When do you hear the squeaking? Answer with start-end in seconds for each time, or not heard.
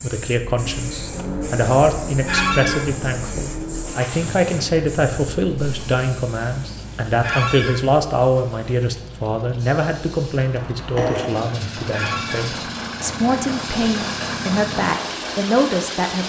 2.2-2.8, 7.2-7.8, 11.9-12.4.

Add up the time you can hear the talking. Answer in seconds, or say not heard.
16 s.